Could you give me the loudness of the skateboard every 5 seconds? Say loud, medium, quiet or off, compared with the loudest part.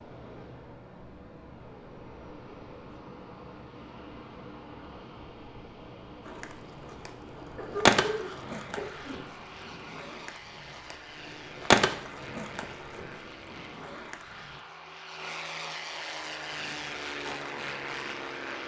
off, loud, loud, quiet.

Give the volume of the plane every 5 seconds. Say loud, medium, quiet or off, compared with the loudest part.
medium, medium, medium, loud.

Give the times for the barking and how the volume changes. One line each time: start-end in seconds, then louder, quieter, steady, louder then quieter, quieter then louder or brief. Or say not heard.
not heard.